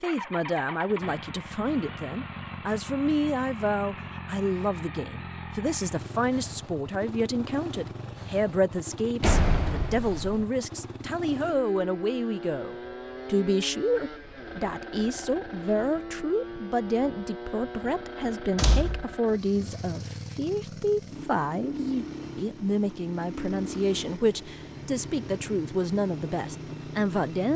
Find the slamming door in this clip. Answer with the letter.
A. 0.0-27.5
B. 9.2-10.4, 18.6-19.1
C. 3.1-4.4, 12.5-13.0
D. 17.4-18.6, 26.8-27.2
B.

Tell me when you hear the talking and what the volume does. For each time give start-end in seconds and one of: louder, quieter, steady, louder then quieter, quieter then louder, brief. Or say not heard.
0.0-27.5 steady.